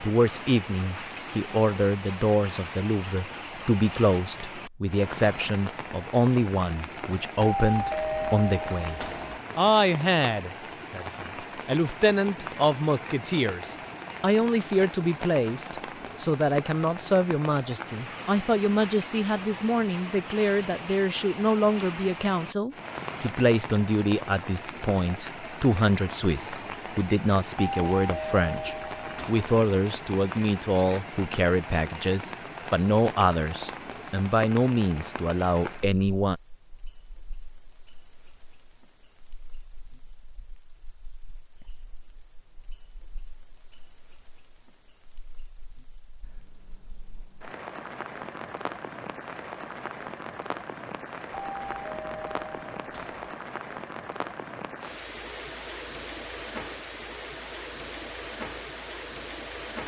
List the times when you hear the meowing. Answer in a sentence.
You can hear the meowing from 46.2 to 47.5 s.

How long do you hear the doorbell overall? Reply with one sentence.
The doorbell can be heard for 6 seconds in total.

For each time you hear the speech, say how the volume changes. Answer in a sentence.
You can hear the speech from 0.0 to 36.4 s, at a steady volume.